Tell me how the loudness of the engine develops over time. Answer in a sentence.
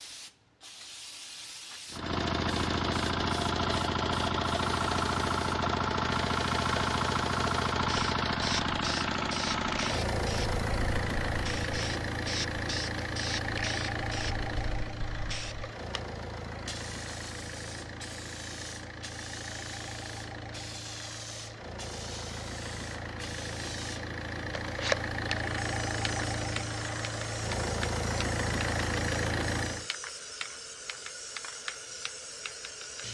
The volume of the engine goes down, then up.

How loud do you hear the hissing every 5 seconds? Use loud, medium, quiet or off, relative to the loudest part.
medium, loud, loud, medium, loud, loud, loud.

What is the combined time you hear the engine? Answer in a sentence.
You can hear the engine for 28 seconds altogether.